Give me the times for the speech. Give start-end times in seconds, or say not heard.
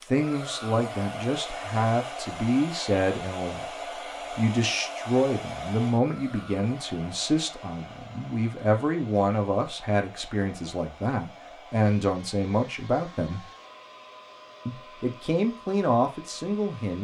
0.1-3.6, 4.3-13.4, 14.7-16.9.